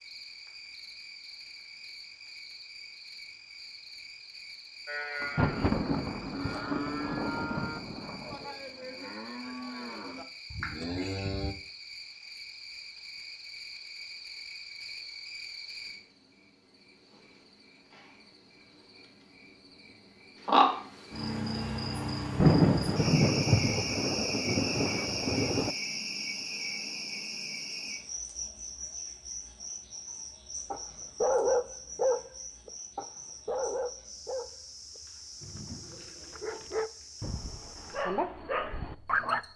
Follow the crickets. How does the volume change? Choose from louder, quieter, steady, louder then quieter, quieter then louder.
louder then quieter.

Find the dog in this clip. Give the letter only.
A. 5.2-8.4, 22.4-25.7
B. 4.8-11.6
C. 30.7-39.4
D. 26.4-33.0
C.